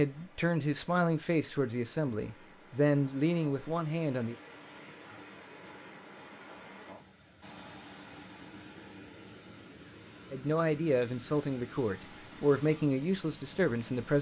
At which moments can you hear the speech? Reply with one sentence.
You can hear the speech from 0.0 to 4.3 s and from 10.3 to 14.1 s.